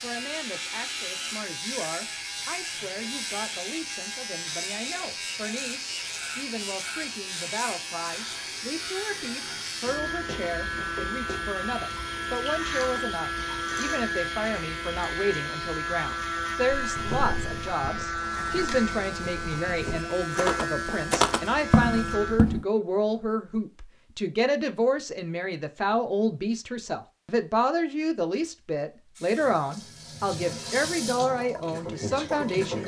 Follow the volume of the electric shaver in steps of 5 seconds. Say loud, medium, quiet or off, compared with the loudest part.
loud, loud, loud, loud, loud, off, off.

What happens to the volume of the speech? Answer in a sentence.
The volume of the speech goes up.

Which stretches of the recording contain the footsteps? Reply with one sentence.
You can hear the footsteps from 16.8 to 22.6 s.